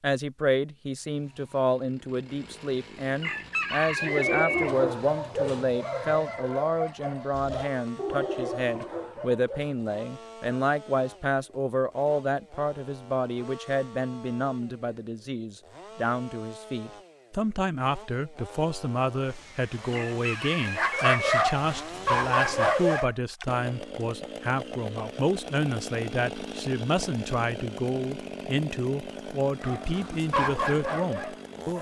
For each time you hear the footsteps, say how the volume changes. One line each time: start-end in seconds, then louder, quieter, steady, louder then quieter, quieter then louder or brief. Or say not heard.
not heard.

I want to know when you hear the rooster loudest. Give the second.
4 s.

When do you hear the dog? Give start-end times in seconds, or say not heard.
4.0-9.9, 20.6-23.1, 29.6-31.7.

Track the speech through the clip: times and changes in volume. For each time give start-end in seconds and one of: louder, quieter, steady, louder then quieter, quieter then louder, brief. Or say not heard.
0.0-31.7 steady.